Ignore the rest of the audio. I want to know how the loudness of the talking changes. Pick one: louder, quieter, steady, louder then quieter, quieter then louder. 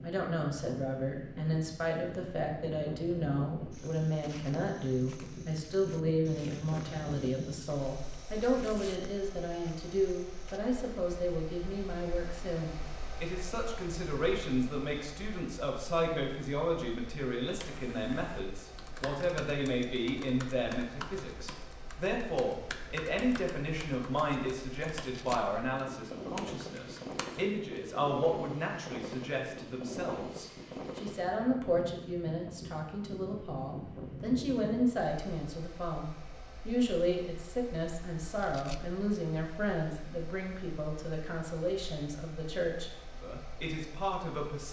steady.